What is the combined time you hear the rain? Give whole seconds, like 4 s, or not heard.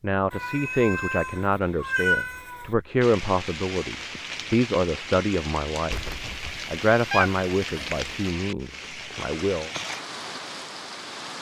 8 s.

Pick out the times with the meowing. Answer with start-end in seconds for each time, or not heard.
0.3-2.7, 5.9-8.1.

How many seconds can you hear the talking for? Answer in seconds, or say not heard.
9 s.